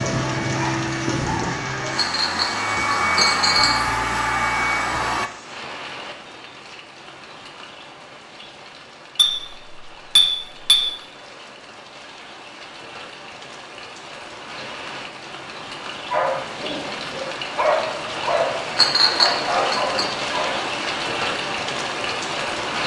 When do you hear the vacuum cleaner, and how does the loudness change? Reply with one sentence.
You can hear the vacuum cleaner from 0.0 to 5.3 s, getting louder.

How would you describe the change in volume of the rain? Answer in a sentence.
The volume of the rain goes down, then up.